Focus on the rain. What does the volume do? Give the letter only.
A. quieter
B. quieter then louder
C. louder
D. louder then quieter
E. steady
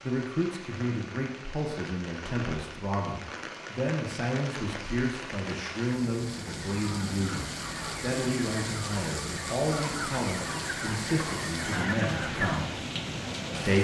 C.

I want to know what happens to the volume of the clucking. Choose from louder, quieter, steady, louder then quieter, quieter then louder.
louder.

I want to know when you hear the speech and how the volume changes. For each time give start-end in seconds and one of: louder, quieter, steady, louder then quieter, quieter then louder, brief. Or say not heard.
0.0-12.7 steady.